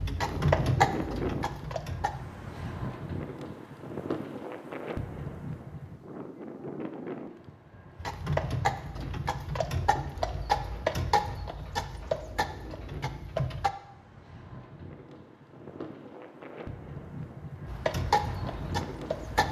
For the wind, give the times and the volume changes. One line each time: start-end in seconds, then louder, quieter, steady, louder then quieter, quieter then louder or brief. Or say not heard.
0.0-19.4 quieter then louder.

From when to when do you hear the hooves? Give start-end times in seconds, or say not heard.
0.0-2.2, 8.0-13.7, 17.6-19.4.